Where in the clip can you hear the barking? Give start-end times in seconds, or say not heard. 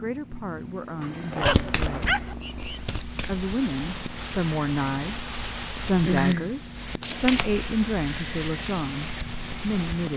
1.0-2.8.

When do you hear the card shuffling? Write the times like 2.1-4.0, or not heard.
1.4-3.5, 7.0-7.7.